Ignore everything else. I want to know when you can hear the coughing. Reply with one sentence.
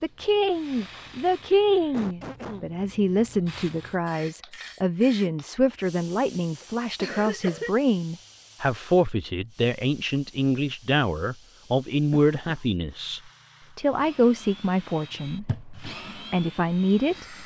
You can hear the coughing from 1.9 to 2.6 s, from 6.6 to 7.7 s and from 12.1 to 12.7 s.